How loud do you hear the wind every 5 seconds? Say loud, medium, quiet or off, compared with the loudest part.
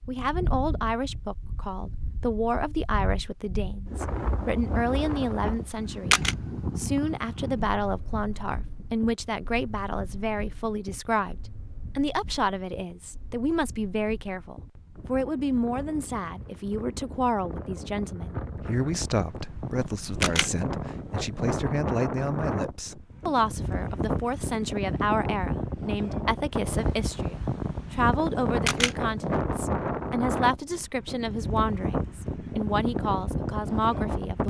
medium, medium, quiet, medium, loud, loud, loud.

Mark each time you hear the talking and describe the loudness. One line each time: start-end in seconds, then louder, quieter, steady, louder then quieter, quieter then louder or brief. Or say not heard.
0.1-11.3 steady
11.9-34.4 steady.